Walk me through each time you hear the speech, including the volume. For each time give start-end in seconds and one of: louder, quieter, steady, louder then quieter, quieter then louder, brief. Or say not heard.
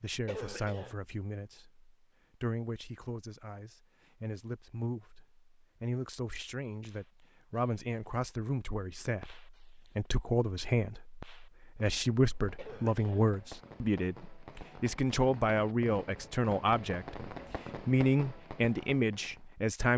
0.0-19.9 louder.